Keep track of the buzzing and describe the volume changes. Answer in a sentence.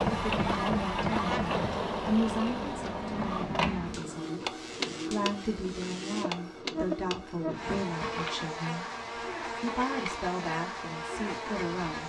The loudness of the buzzing goes down, then up.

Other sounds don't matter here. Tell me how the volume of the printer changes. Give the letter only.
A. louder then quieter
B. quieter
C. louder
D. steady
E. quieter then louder
B.